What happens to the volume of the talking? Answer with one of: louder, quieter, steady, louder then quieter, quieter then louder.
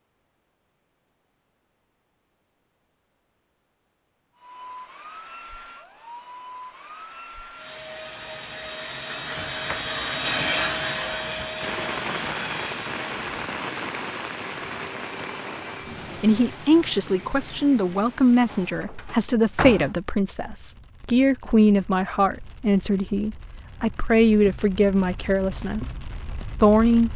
steady.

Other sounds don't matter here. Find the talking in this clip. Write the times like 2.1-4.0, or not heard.
16.2-27.1.